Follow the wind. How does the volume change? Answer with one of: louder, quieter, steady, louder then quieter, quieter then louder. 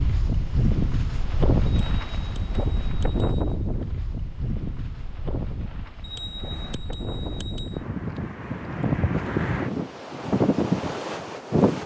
quieter then louder.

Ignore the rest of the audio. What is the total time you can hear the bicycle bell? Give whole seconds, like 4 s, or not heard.
4 s.